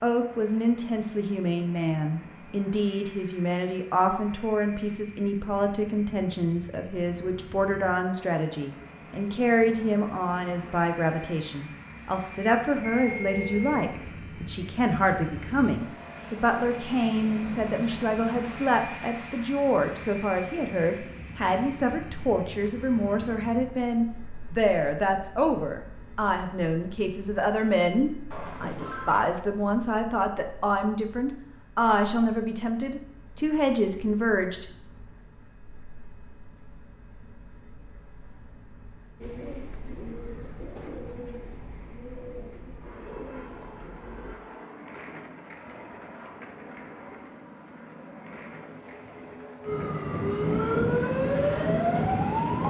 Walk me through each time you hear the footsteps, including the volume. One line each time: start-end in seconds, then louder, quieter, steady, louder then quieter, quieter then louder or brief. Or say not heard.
not heard.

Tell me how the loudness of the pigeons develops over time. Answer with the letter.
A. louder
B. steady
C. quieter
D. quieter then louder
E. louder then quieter
C.